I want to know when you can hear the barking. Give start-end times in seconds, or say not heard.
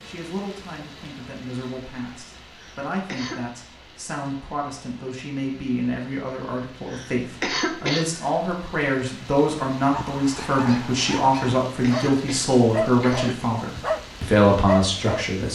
9.8-15.3.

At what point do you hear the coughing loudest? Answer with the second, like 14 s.
8 s.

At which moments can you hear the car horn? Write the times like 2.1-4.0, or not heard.
not heard.